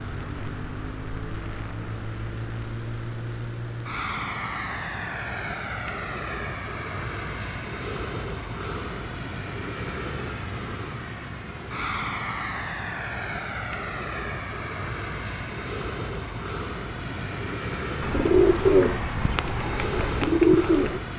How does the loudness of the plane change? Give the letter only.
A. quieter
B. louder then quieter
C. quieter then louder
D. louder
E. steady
E.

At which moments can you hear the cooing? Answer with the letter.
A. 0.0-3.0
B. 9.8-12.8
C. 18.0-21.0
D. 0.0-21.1
C.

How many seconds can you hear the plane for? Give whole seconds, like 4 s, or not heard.
21 s.